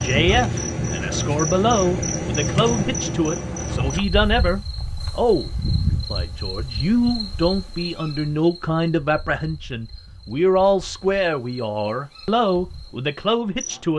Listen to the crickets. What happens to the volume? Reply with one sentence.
The loudness of the crickets goes down.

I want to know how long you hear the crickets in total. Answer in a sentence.
The crickets can be heard for 14 seconds in total.